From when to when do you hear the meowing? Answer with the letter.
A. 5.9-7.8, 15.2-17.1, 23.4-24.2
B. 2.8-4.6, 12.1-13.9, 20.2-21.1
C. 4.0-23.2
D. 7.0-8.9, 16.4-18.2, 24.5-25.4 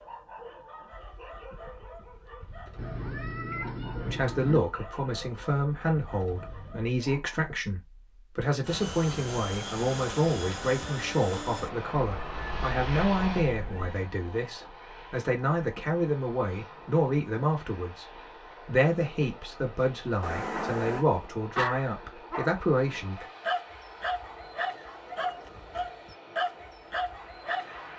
B.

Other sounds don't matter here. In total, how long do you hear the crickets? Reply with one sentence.
The crickets can't be heard in this clip.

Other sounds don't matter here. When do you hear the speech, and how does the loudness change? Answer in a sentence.
You can hear the speech from 4.0 to 23.2 s, at a steady volume.